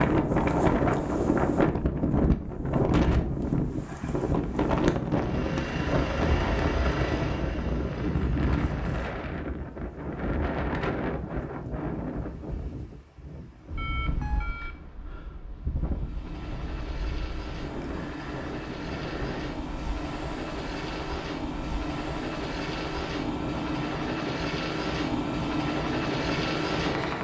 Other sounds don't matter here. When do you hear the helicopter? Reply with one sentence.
The helicopter can be heard from 5.1 to 9.1 s and from 15.9 to 27.1 s.